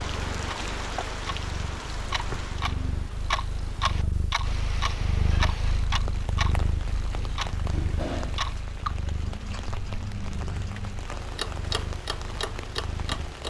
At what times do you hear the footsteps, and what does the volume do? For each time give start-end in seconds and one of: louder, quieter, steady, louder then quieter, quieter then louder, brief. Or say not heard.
not heard.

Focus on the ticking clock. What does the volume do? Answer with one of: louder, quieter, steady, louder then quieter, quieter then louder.
steady.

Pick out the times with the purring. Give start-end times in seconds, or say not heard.
0.0-13.4.